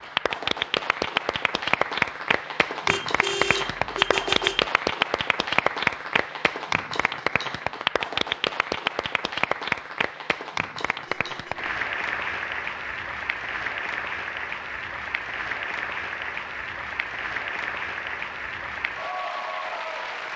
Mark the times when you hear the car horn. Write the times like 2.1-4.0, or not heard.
2.9-4.7, 11.1-11.7.